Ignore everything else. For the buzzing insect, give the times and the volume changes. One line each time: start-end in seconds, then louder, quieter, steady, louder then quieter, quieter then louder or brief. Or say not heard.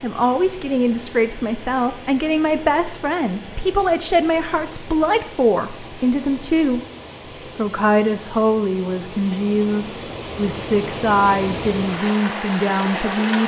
not heard.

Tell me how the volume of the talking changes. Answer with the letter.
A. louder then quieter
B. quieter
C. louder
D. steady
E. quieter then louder
D.